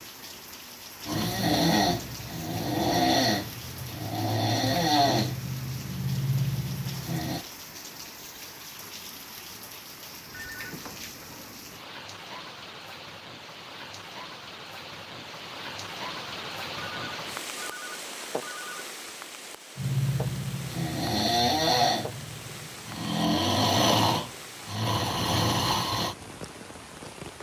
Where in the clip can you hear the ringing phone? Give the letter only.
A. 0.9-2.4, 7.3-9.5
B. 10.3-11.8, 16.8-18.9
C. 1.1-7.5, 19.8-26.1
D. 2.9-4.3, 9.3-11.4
B.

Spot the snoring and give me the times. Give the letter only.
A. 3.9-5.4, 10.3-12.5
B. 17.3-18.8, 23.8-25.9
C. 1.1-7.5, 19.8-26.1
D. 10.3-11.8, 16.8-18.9
C.